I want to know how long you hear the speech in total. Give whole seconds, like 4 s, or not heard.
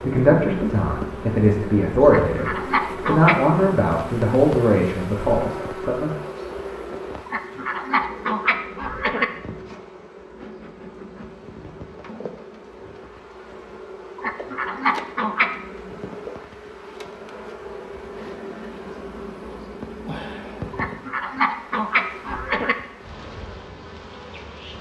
6 s.